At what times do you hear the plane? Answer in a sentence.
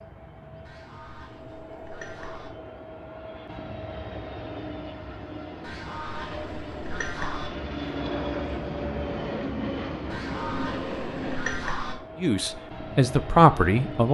The plane can be heard from 0.0 to 14.0 s.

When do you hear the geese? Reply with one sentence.
You can hear the geese from 0.7 to 2.5 s, from 5.6 to 7.5 s and from 10.1 to 11.9 s.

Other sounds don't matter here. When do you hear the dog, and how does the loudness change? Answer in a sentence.
The dog can't be heard in this clip.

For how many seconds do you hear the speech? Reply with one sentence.
You can hear the speech for 2 seconds altogether.